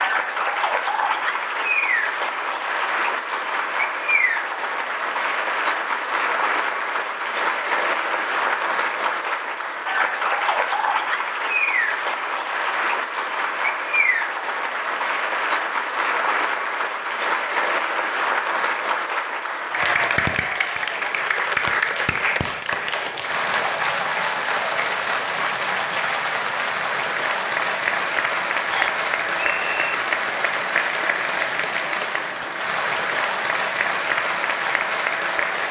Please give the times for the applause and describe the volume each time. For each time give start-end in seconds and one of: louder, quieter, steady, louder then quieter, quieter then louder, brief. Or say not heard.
0.0-35.6 steady.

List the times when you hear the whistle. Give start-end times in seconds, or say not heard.
28.7-29.9.